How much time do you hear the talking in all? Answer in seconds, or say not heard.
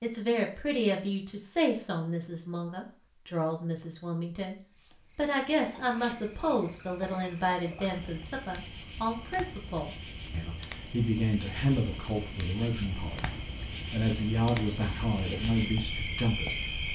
17 s.